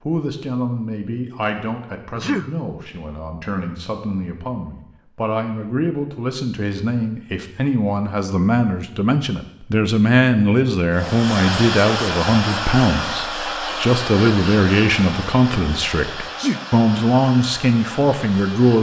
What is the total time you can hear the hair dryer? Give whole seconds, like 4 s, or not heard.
8 s.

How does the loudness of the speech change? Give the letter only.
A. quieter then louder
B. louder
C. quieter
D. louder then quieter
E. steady
B.